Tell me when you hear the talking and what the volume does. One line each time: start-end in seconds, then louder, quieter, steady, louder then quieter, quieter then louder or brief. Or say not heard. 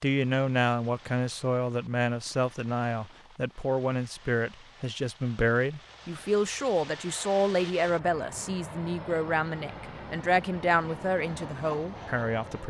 0.0-12.6 steady.